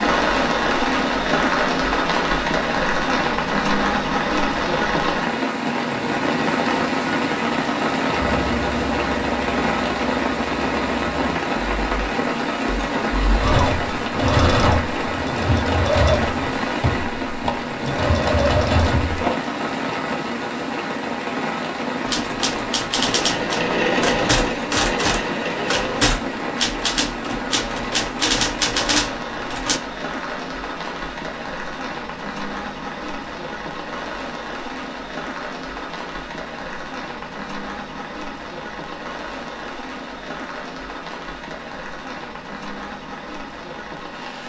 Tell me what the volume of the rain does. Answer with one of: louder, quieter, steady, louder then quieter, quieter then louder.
quieter.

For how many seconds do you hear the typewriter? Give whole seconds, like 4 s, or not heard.
8 s.